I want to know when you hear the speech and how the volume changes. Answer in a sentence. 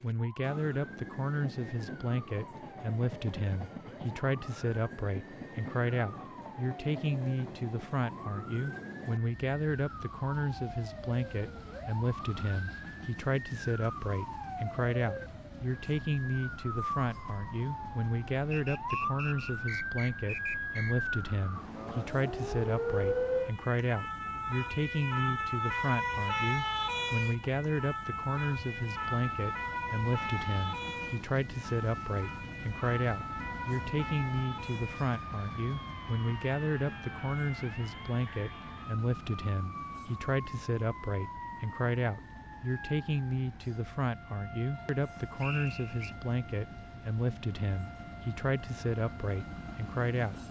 You can hear the speech from 0.0 to 50.4 s, at a steady volume.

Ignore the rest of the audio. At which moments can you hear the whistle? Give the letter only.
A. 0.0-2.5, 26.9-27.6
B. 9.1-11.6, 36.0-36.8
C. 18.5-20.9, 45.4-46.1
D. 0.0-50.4
C.